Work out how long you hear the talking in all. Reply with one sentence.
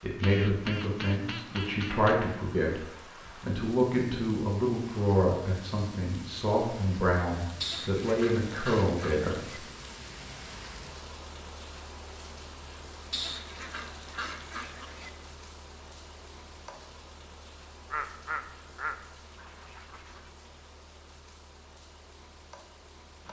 The talking can be heard for 10 seconds in total.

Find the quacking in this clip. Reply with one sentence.
The quacking can be heard from 0.2 to 2.1 s, from 7.6 to 9.6 s, from 13.1 to 15.1 s and from 17.9 to 20.3 s.